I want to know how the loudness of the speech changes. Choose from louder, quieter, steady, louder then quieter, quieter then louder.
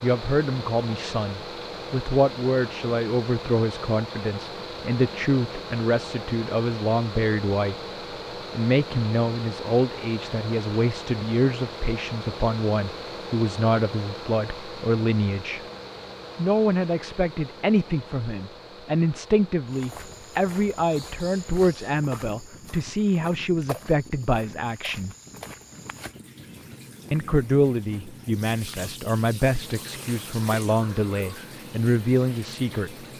steady.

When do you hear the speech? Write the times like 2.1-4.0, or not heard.
0.0-7.8, 8.6-15.6, 16.4-25.1, 27.1-33.0.